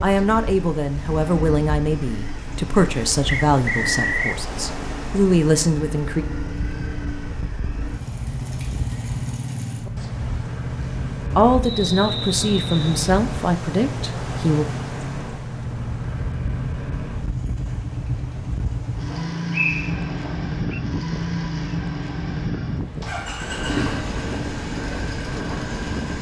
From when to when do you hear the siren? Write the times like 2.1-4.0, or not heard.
not heard.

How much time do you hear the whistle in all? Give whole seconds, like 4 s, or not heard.
4 s.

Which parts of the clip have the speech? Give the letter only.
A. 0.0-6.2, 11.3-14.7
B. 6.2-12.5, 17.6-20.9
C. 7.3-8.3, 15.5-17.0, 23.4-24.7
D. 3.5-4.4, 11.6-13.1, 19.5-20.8
A.